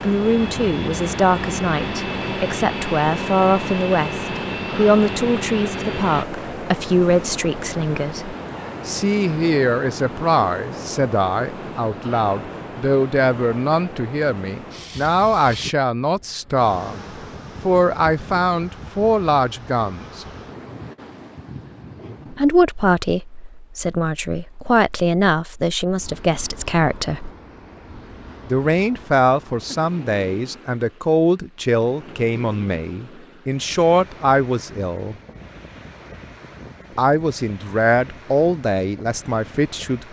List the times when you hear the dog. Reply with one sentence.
You can't hear the dog here.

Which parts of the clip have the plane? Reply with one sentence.
The plane can be heard from 0.0 to 6.2 s.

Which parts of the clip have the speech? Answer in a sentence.
You can hear the speech from 0.0 to 17.0 s, from 17.6 to 20.2 s, from 22.3 to 27.3 s, from 28.4 to 35.1 s and from 37.0 to 40.0 s.